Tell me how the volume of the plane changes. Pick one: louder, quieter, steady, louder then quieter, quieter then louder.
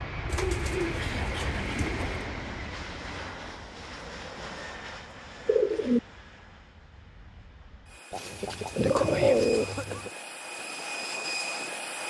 quieter then louder.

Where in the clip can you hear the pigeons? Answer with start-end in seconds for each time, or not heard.
0.2-2.2, 5.5-6.0, 8.1-10.1.